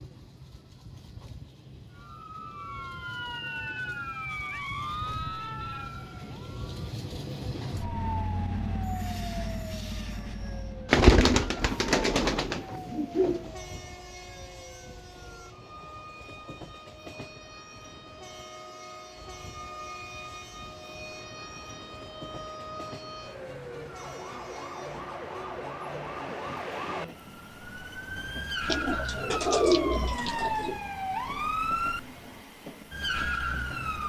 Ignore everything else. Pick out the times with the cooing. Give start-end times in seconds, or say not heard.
10.8-13.4, 28.6-30.8.